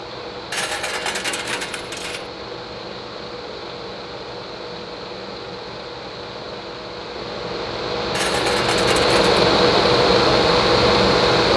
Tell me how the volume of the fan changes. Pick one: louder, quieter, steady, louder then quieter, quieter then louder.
louder.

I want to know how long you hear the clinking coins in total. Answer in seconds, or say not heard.
3 s.